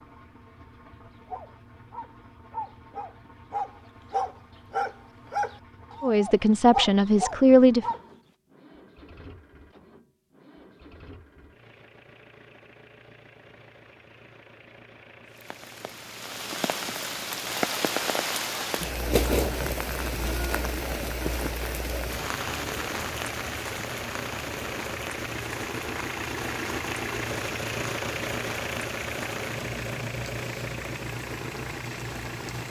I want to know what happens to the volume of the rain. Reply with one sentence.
The loudness of the rain goes down.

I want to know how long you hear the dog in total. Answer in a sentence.
You can hear the dog for 7 seconds altogether.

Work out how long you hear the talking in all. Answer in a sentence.
The talking can be heard for 2 seconds in total.